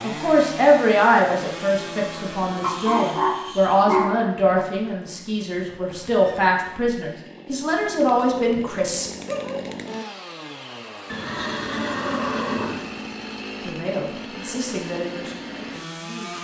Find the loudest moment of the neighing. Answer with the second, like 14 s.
12 s.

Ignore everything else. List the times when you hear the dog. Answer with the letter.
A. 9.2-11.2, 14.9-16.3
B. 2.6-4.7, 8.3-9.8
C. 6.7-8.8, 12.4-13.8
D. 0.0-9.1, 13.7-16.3
B.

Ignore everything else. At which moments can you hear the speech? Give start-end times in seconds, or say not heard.
0.0-9.1, 13.7-16.3.